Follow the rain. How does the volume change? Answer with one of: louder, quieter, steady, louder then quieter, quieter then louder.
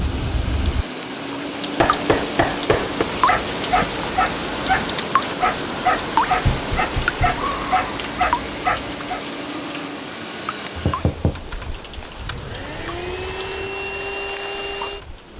quieter.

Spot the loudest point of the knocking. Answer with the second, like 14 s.
2 s.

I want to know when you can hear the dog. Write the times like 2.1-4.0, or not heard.
3.1-9.2.